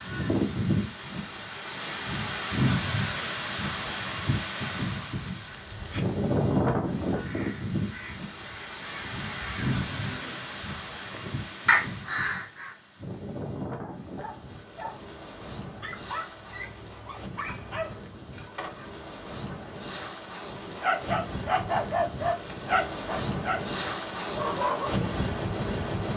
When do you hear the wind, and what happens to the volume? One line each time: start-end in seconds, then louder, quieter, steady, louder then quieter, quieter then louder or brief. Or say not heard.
0.0-26.1 quieter then louder.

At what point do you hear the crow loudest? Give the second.
12 s.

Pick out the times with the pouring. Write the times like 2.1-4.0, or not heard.
not heard.